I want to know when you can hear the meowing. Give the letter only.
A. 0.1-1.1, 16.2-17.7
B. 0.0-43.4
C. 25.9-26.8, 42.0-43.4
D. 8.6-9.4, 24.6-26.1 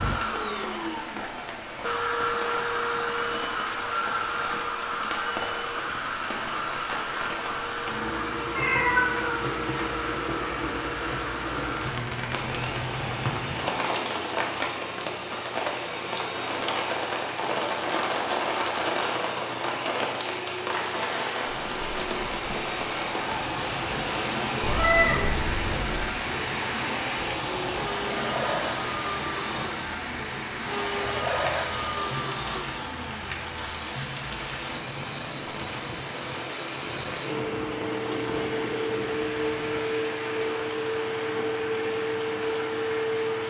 D.